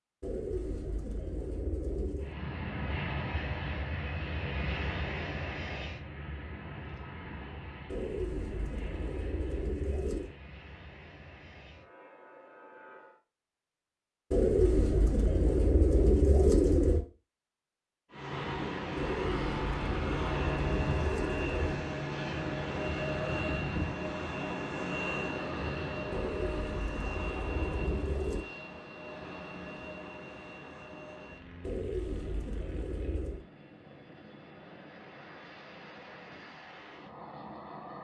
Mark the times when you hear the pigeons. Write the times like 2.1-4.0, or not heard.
0.2-2.4, 7.8-10.3, 14.3-17.0, 18.9-21.8, 26.1-28.4, 31.6-33.5.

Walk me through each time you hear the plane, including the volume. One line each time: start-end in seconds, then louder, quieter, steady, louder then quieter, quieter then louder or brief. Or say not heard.
2.1-13.2 quieter
18.1-37.9 quieter.